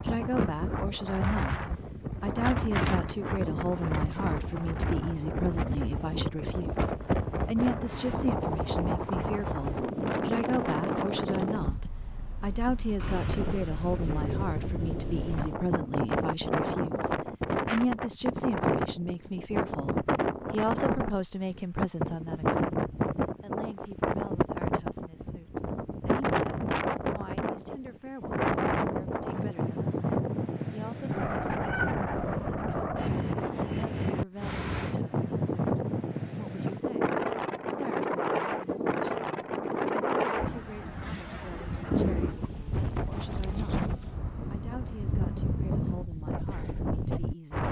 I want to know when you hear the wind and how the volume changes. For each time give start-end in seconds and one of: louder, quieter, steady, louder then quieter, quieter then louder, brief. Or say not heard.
0.0-47.6 steady.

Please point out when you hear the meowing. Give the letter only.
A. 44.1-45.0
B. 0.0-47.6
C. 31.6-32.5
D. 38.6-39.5
C.